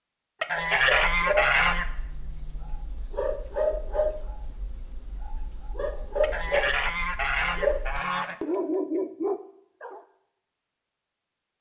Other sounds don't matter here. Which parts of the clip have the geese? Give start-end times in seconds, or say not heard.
0.4-1.9, 6.2-8.3.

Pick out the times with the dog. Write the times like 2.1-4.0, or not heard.
0.6-10.0.